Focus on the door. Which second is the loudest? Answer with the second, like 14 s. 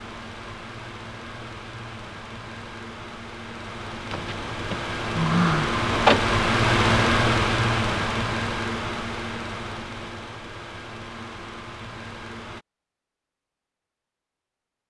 6 s.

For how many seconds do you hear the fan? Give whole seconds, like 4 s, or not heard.
13 s.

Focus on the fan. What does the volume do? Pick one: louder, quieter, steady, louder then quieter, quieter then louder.
louder then quieter.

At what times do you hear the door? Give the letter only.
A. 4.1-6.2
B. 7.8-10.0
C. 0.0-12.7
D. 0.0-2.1
A.